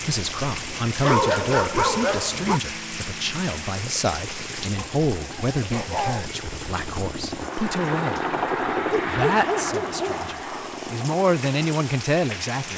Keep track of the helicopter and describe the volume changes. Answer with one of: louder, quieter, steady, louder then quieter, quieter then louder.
louder then quieter.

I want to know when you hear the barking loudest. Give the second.
1 s.